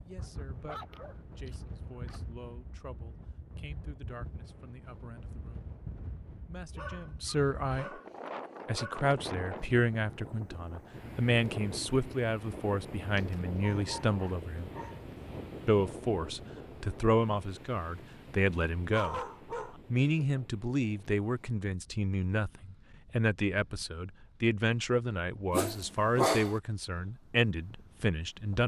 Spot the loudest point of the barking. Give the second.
26 s.